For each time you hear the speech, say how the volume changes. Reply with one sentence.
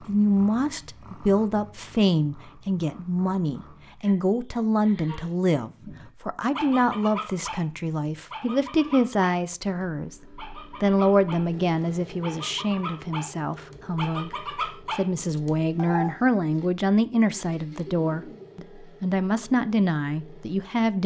You can hear the speech from 0.1 to 21.0 s, at a steady volume.